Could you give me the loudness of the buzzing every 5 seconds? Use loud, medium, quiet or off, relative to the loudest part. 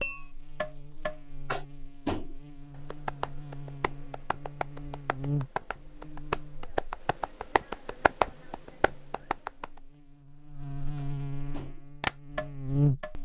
quiet, medium, loud.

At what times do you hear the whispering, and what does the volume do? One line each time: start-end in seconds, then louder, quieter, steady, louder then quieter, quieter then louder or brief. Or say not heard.
not heard.